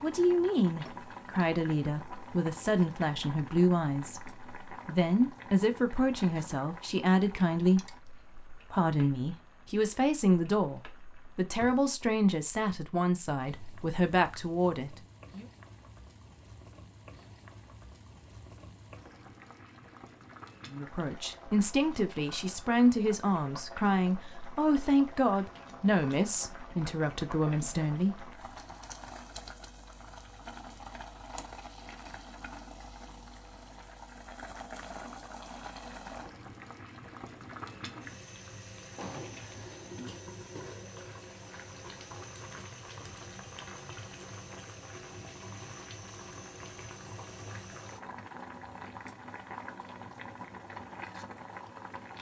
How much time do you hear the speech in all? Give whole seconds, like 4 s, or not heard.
23 s.